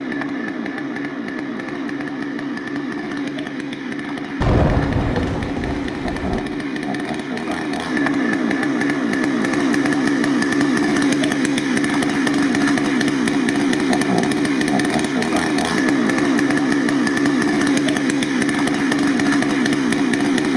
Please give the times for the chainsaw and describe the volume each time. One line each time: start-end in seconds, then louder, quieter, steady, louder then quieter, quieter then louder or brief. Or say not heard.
0.0-20.5 louder.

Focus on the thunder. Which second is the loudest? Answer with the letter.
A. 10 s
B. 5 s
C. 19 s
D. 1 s
B.